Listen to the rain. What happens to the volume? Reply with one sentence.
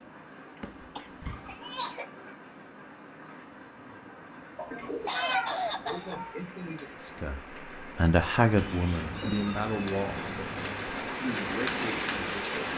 The volume of the rain goes up.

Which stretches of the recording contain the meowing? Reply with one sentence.
You can hear the meowing from 0.8 to 1.8 s, from 4.5 to 6.4 s and from 8.6 to 10.8 s.